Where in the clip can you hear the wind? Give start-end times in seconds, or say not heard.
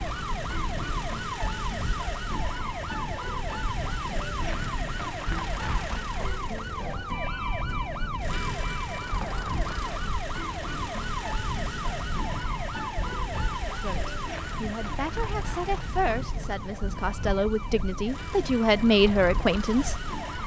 0.0-20.4.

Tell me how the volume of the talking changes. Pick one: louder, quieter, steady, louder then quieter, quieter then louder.
louder.